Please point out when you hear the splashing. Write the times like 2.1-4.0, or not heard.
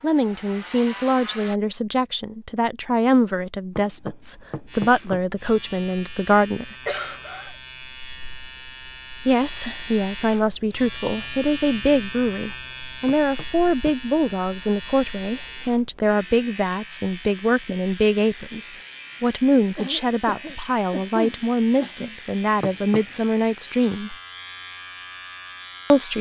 not heard.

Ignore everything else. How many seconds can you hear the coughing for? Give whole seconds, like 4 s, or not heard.
3 s.